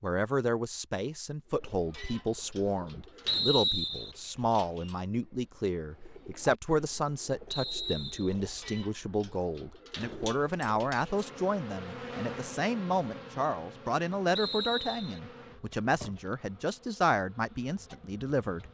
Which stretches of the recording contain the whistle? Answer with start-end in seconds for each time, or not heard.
3.2-4.2, 7.5-8.3, 14.3-15.2.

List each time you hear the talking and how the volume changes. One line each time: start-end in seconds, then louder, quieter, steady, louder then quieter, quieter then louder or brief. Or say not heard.
0.0-18.6 steady.